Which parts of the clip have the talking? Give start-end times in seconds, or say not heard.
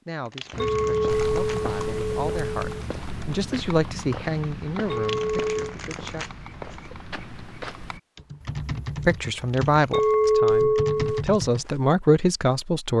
0.1-6.2, 9.1-12.9.